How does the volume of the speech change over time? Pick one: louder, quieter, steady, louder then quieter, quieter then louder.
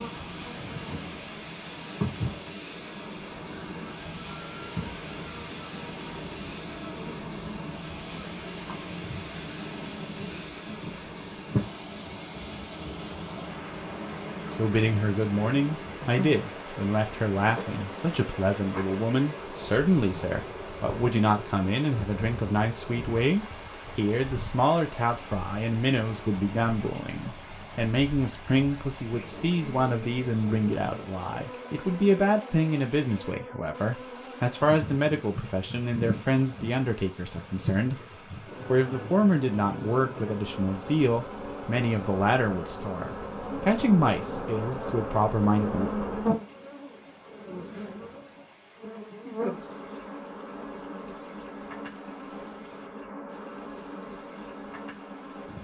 steady.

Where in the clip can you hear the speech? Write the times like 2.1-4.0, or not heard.
14.5-45.7.